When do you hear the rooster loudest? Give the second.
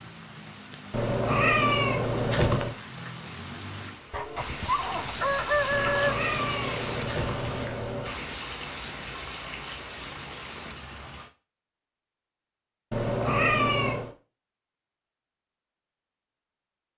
6 s.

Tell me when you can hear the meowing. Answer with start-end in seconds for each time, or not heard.
0.9-2.8, 5.7-8.2, 12.9-14.2.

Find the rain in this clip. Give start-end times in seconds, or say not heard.
0.0-11.3.